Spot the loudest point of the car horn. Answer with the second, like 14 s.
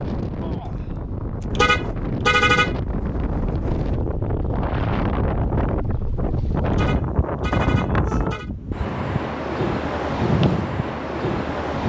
2 s.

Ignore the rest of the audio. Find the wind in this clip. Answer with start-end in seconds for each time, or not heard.
0.0-11.8.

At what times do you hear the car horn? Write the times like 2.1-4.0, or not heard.
1.6-2.8, 6.7-8.5.